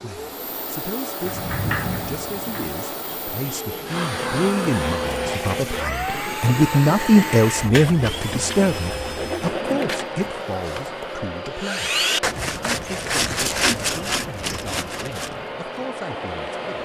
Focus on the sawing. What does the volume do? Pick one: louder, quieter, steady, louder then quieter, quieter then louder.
louder.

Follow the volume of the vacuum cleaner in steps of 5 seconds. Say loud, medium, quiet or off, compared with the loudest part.
loud, loud, medium, loud.